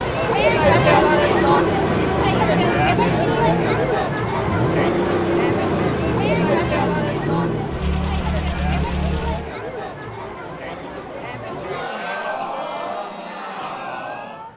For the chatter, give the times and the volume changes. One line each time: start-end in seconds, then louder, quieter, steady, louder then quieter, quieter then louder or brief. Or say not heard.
0.0-14.5 quieter.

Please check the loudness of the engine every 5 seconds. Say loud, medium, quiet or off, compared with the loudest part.
loud, loud, off.